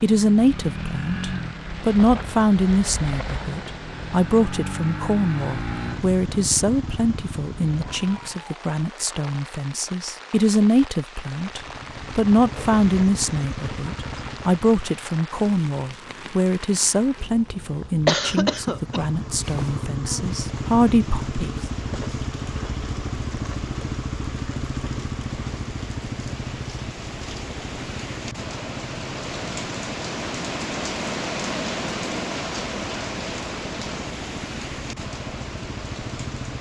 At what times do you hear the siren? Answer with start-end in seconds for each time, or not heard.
not heard.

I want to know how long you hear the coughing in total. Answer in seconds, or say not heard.
2 s.